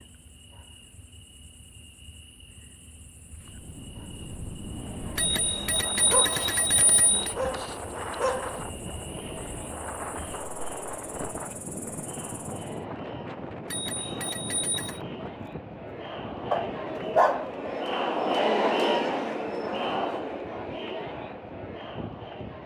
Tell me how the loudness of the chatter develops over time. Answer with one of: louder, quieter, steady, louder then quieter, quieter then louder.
louder.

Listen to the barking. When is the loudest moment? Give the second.
17 s.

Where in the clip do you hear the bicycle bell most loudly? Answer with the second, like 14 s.
6 s.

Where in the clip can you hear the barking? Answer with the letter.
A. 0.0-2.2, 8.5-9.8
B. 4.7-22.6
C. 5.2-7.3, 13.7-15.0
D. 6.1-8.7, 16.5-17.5
D.